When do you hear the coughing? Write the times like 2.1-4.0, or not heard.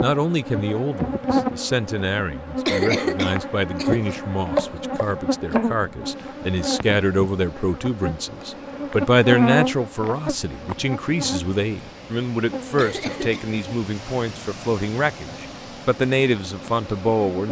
2.6-4.0, 12.8-13.4.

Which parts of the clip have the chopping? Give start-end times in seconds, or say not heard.
3.9-5.7.